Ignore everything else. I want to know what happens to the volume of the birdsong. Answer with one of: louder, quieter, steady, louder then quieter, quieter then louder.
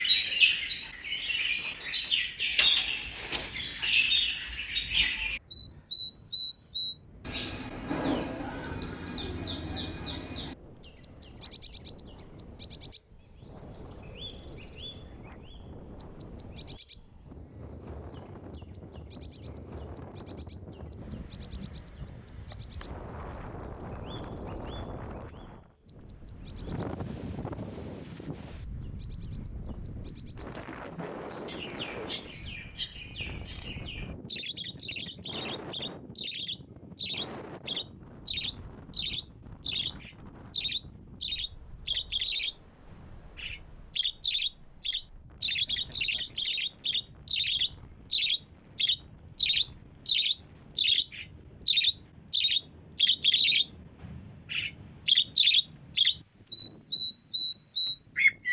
quieter then louder.